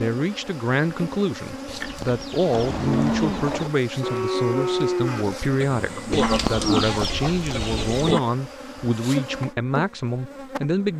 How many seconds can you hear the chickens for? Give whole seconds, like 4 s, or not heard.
4 s.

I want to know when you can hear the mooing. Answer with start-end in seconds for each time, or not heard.
2.5-8.2.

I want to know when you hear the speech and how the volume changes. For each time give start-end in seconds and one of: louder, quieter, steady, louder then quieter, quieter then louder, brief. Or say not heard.
0.0-10.9 steady.